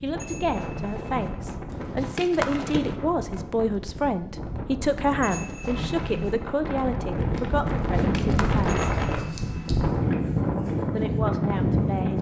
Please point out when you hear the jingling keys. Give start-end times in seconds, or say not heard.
1.6-3.0, 7.7-8.7.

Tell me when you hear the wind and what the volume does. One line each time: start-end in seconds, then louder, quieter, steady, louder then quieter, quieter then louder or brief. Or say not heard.
0.0-12.1 louder.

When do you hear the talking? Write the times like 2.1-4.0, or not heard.
0.0-8.8, 10.9-12.1.